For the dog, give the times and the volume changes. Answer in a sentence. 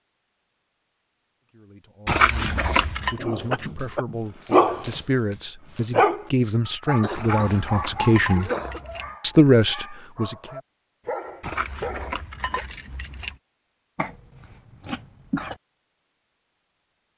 You can hear the dog from 2.4 to 12.7 s, getting quieter then louder.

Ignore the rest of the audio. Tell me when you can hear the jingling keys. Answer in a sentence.
You can hear the jingling keys from 2.0 to 3.1 s, from 7.2 to 9.2 s and from 11.4 to 13.3 s.